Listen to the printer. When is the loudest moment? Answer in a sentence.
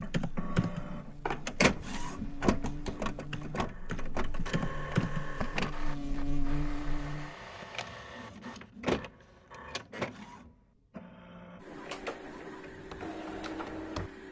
The volume of the printer peaks at 2 seconds.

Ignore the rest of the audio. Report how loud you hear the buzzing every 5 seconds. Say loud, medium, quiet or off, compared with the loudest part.
medium, loud, off.